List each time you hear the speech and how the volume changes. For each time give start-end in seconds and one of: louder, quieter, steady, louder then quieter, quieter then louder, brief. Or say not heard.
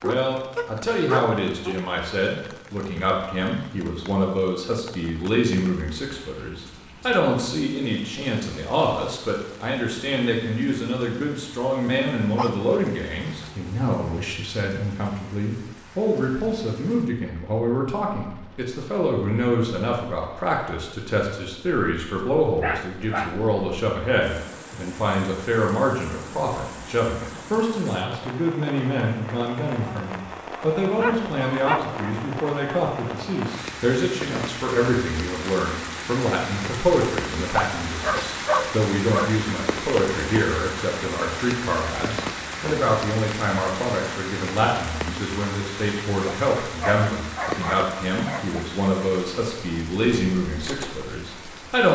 0.0-51.9 steady.